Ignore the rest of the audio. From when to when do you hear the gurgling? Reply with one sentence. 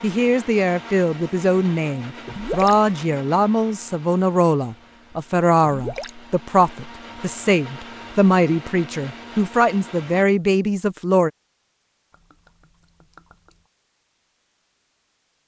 The gurgling can be heard from 2.2 to 2.8 s, from 5.7 to 6.2 s and from 12.1 to 13.7 s.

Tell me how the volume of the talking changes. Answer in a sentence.
The loudness of the talking stays about the same.